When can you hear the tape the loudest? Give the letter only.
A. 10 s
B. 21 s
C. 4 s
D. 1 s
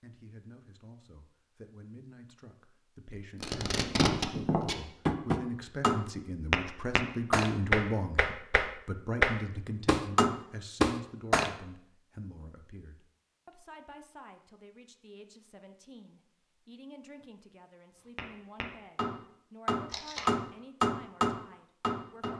C.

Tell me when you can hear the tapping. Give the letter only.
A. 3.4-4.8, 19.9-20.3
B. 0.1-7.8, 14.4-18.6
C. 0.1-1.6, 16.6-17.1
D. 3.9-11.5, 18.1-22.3
D.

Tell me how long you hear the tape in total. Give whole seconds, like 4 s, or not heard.
2 s.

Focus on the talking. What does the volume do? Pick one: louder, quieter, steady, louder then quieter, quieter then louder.
louder then quieter.